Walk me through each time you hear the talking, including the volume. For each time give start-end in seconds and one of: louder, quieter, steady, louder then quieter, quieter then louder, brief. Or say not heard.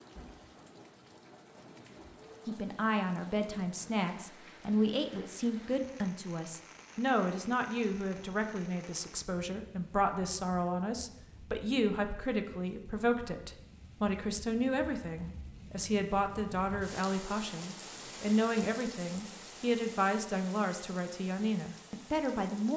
2.5-22.7 steady.